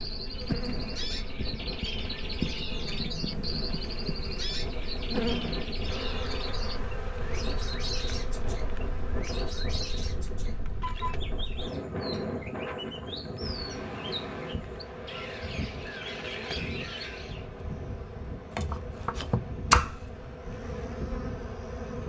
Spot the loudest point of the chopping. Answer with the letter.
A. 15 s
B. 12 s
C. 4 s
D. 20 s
D.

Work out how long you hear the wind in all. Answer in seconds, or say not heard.
22 s.